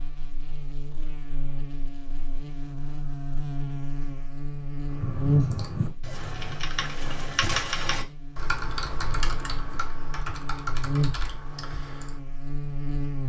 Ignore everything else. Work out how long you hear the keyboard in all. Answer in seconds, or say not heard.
7 s.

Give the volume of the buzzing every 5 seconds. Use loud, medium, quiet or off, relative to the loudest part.
medium, loud, loud.